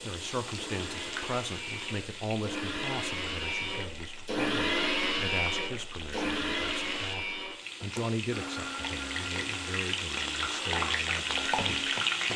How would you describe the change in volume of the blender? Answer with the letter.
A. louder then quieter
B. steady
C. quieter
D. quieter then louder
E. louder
A.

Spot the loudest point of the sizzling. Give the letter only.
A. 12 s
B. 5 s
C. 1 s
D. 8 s
A.